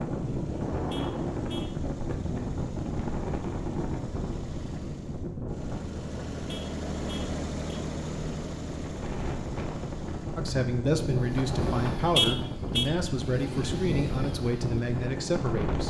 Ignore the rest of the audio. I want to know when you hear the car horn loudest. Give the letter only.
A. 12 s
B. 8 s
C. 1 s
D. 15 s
A.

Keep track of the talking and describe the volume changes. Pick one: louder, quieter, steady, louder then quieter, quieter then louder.
steady.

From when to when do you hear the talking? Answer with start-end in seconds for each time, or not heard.
10.3-15.8.